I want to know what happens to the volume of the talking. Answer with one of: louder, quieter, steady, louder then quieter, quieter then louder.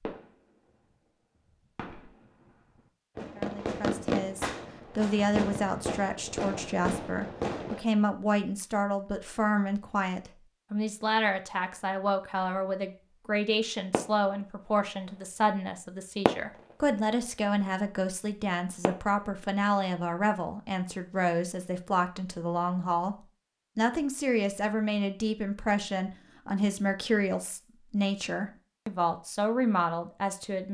steady.